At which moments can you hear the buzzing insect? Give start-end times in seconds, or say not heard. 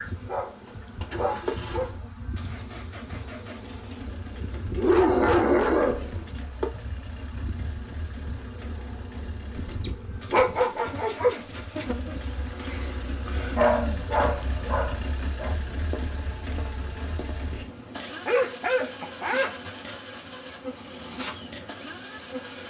0.0-22.6.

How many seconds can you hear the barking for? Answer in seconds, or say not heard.
9 s.